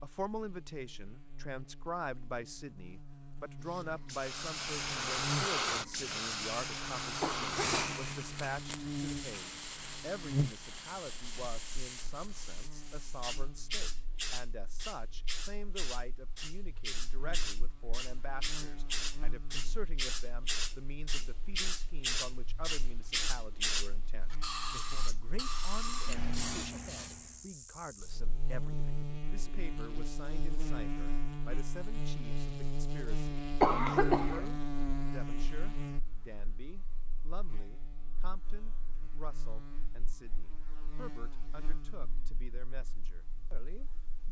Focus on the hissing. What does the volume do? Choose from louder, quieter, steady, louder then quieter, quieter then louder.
quieter then louder.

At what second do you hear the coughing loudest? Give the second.
34 s.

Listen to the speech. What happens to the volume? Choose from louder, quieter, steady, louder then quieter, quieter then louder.
quieter.